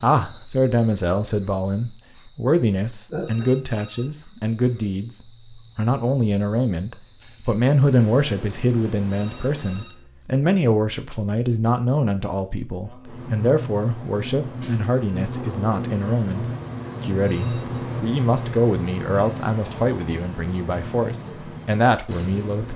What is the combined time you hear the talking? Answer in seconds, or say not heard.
23 s.